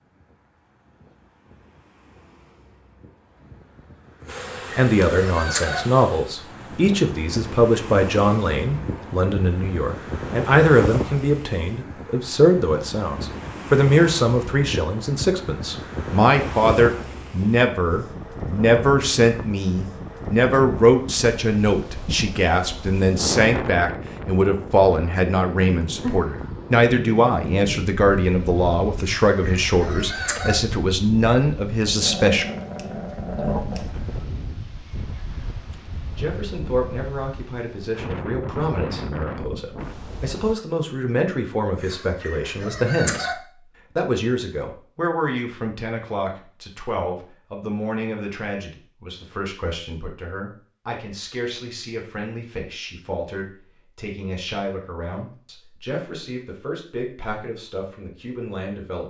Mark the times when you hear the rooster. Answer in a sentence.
The rooster can be heard from 4.2 to 5.8 s, from 28.9 to 30.6 s and from 41.7 to 43.4 s.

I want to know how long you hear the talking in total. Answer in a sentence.
The talking can be heard for 51 seconds in total.